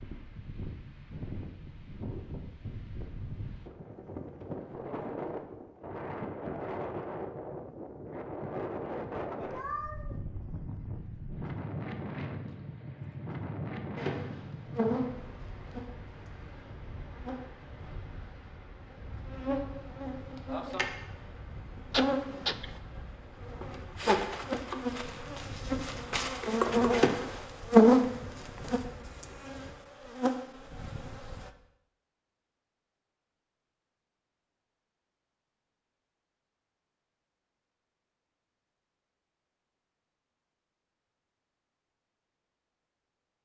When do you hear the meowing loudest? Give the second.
22 s.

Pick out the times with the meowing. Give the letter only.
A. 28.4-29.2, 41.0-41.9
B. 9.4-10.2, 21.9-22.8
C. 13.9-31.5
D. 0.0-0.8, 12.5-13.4
B.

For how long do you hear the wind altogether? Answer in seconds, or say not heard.
30 s.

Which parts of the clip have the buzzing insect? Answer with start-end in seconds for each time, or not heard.
13.9-31.5.